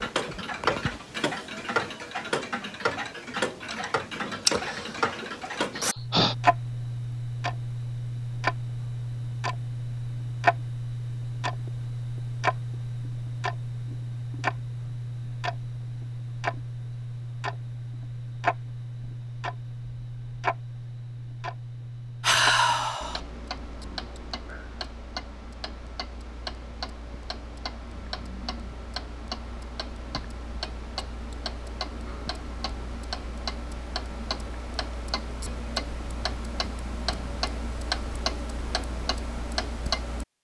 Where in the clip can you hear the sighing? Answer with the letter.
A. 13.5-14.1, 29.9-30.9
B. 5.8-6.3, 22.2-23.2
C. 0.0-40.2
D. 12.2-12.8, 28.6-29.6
B.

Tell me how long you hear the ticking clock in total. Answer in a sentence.
You can hear the ticking clock for 40 seconds altogether.